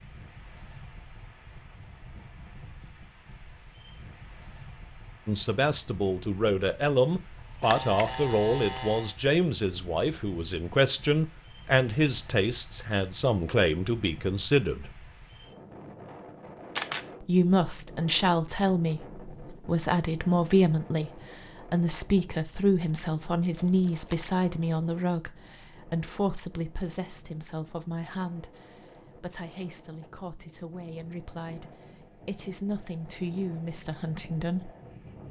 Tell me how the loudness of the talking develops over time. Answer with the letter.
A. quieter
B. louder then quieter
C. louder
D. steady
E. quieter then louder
A.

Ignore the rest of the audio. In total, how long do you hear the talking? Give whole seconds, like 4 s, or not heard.
27 s.